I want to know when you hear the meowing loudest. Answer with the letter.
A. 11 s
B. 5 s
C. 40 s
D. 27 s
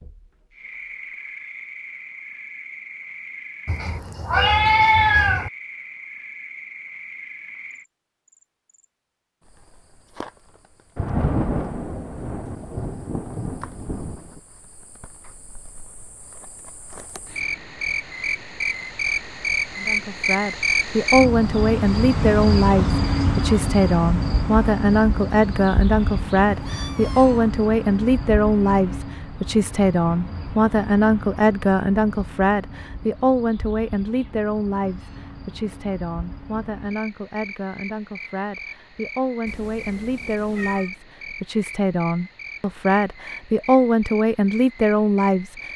B.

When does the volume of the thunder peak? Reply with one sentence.
The loudest moment of the thunder is at 11 seconds.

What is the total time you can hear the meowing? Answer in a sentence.
The meowing can be heard for 4 seconds in total.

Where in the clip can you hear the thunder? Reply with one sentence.
The thunder can be heard from 10.9 to 14.4 s.